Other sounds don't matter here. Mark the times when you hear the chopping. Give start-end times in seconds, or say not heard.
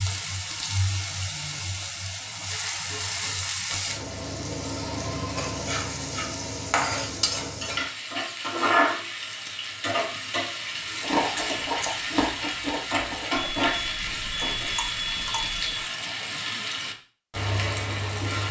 not heard.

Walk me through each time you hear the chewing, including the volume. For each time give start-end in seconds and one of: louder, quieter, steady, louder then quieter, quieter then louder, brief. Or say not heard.
11.0-16.2 quieter.